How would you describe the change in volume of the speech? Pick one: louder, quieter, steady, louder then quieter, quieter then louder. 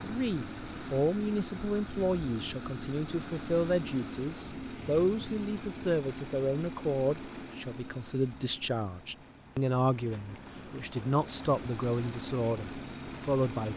steady.